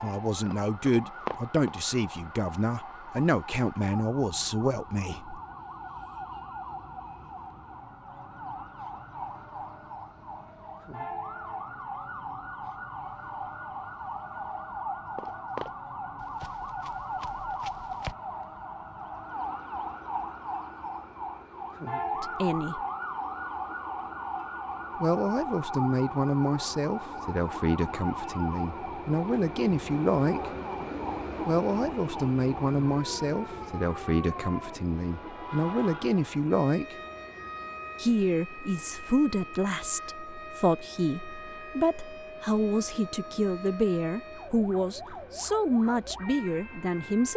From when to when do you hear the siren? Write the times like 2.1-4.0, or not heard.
0.0-47.3.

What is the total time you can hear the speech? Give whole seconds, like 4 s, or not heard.
26 s.